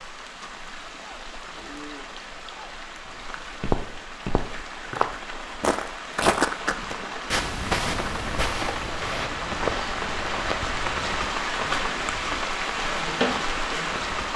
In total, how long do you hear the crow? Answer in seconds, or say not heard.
not heard.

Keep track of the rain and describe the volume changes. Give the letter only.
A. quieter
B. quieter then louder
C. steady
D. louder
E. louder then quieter
D.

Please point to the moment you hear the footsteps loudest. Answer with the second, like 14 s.
6 s.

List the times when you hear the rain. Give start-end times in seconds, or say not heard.
0.0-14.3.